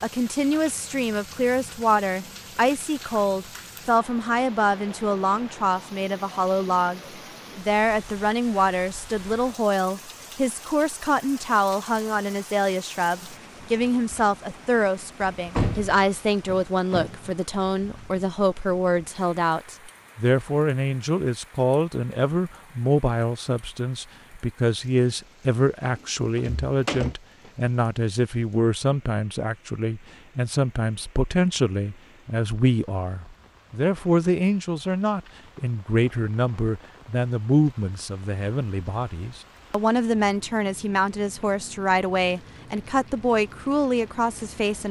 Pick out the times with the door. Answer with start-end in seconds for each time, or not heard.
15.6-17.4, 26.4-27.1.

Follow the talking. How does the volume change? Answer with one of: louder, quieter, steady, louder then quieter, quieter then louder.
steady.